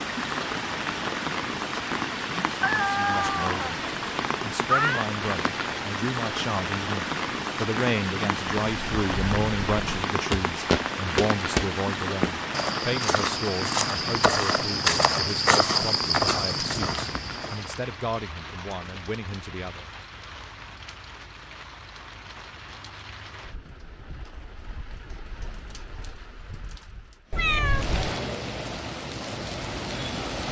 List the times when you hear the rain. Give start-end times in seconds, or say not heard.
0.0-30.4.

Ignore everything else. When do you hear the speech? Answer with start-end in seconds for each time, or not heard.
2.9-19.9.